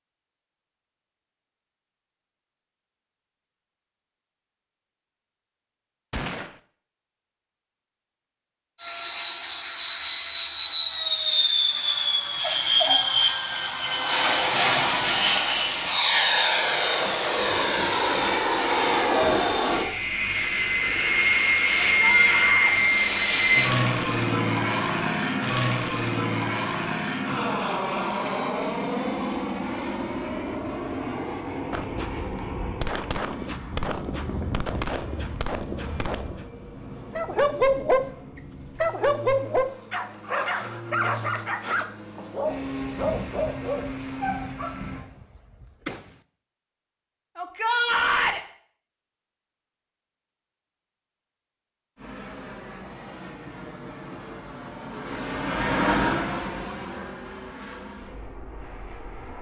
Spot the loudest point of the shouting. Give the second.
48 s.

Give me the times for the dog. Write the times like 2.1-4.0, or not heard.
37.1-38.0, 38.8-44.8.